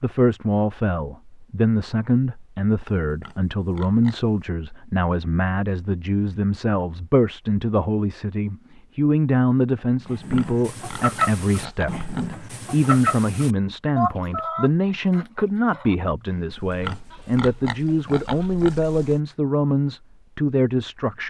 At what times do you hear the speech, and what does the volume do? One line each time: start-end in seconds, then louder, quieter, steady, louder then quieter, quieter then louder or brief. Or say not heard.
0.0-21.2 steady.